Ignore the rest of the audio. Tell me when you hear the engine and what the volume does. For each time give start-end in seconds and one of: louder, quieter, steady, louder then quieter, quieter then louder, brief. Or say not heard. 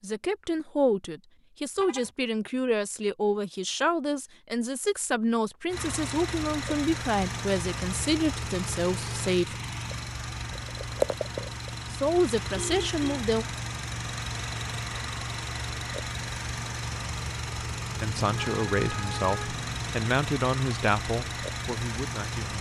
5.7-22.5 steady.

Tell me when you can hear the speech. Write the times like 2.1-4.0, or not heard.
0.0-9.6, 11.9-13.4, 18.0-22.5.